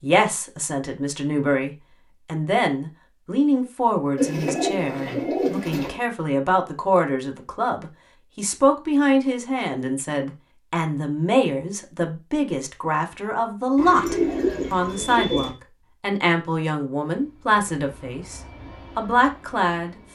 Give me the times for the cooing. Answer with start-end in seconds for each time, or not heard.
4.2-6.0, 13.8-15.6.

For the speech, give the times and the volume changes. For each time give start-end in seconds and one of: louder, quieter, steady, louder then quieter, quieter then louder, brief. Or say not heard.
0.0-20.0 steady.